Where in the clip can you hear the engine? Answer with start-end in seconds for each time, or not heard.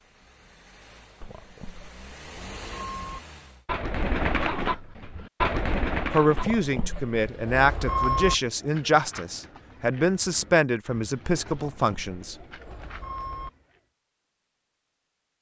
0.0-3.6.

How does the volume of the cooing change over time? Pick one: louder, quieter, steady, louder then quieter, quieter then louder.
quieter.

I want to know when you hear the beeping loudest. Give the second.
8 s.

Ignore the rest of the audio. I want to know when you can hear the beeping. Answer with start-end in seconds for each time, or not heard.
1.2-3.2, 6.3-8.3, 11.5-13.5.